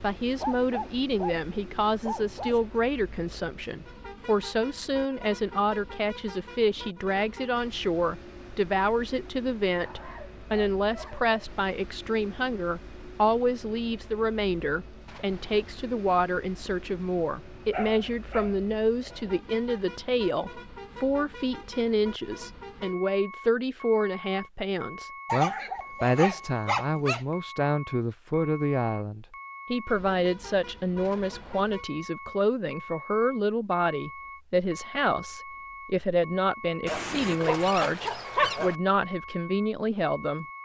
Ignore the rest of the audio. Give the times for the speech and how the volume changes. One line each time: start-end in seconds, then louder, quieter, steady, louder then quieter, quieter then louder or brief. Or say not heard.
0.0-40.5 steady.